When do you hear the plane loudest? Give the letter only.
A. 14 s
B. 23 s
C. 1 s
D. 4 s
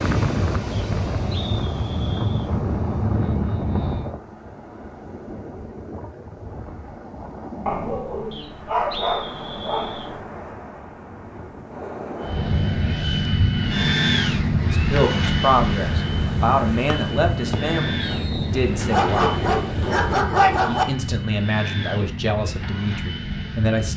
A.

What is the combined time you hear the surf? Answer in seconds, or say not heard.
20 s.